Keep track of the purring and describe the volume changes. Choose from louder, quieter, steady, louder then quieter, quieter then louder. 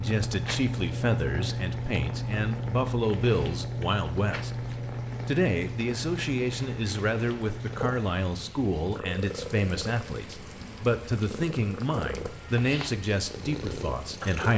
quieter.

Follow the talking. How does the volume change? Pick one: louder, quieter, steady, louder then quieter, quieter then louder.
steady.